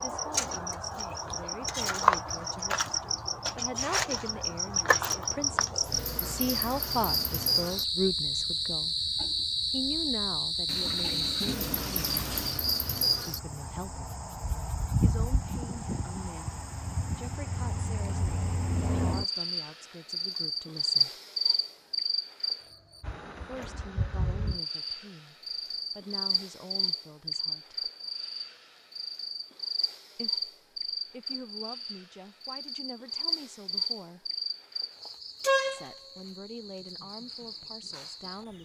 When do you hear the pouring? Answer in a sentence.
You can hear the pouring from 10.7 to 12.7 s.